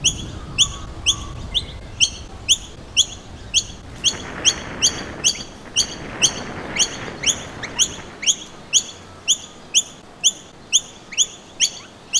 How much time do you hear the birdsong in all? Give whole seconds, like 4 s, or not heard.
12 s.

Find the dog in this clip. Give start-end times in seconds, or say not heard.
not heard.